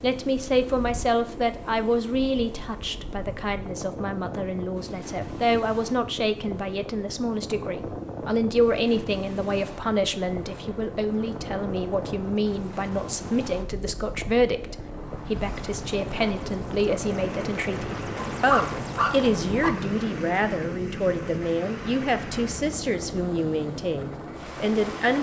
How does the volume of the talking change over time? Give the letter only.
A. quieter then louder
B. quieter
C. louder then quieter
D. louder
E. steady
E.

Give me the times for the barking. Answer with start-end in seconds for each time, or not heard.
18.1-19.7.